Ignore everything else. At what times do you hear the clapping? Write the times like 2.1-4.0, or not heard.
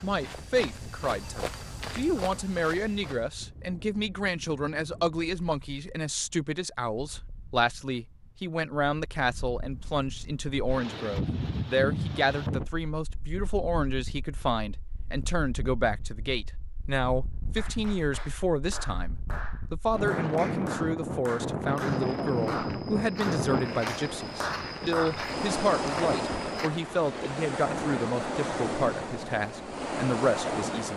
17.6-25.2.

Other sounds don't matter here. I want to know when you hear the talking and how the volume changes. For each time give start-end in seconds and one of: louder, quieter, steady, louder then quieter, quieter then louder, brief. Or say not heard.
0.0-30.9 steady.